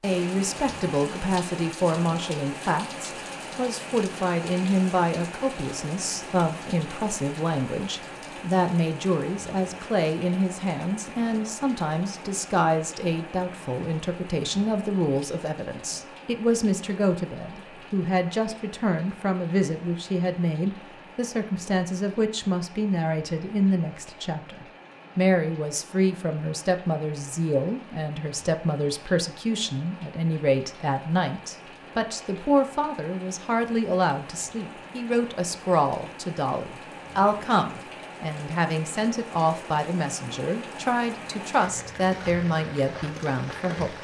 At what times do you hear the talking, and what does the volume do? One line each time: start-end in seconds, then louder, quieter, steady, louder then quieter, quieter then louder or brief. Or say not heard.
0.0-43.9 steady.